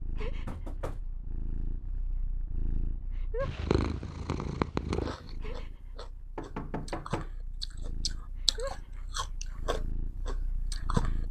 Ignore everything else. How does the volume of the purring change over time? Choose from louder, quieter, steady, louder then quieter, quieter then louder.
louder then quieter.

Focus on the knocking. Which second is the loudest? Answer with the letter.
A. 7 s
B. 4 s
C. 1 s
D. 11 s
A.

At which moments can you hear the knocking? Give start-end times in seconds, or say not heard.
0.5-1.1, 6.3-7.3.